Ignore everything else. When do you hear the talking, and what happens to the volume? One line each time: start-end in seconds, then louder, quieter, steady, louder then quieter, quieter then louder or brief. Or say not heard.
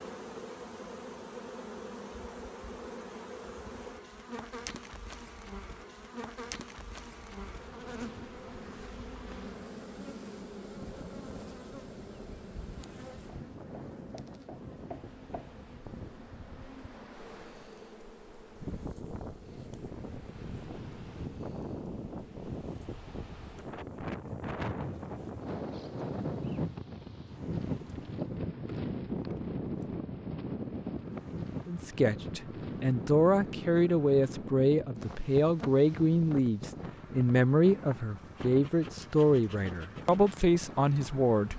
31.6-41.5 steady.